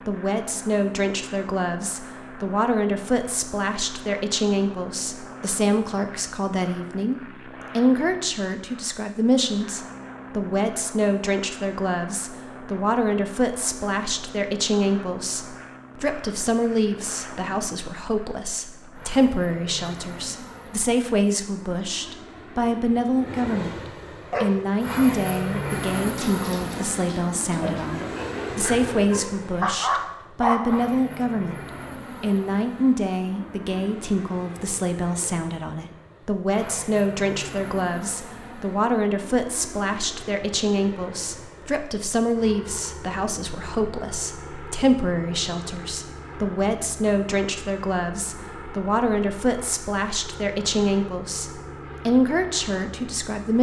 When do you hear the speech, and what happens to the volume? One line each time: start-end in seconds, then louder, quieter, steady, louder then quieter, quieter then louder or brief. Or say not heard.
0.1-53.5 steady.